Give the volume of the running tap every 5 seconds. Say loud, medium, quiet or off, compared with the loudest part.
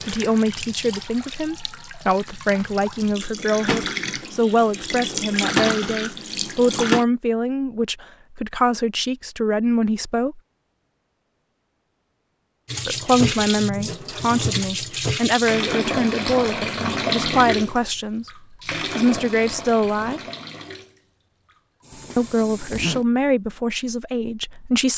medium, loud, loud, loud, quiet.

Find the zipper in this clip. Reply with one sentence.
The zipper can be heard from 21.9 to 23.1 s.